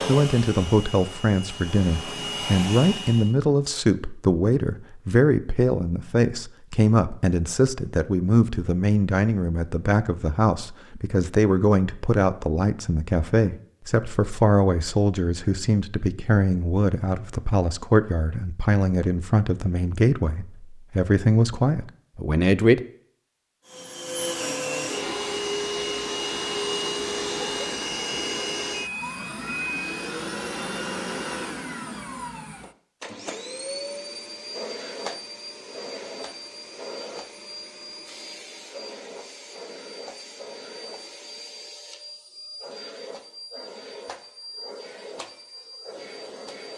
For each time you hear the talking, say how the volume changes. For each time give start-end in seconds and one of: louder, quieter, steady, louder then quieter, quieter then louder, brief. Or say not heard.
0.1-22.8 steady.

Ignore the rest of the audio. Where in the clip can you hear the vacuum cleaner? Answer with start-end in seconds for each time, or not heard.
0.0-3.4, 23.6-46.7.